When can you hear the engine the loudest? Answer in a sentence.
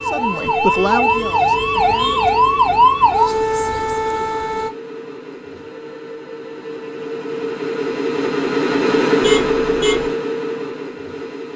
The loudest moment of the engine is at 9 seconds.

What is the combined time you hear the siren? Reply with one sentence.
You can hear the siren for 5 seconds altogether.